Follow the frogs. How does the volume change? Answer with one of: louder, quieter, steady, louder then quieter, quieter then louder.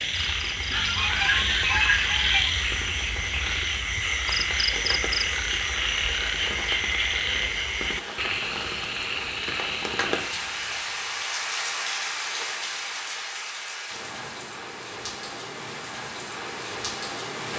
quieter.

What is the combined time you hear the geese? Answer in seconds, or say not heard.
2 s.